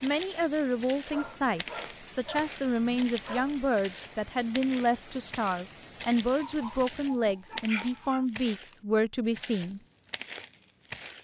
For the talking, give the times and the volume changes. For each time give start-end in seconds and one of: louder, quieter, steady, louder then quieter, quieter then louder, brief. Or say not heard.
0.0-9.8 steady.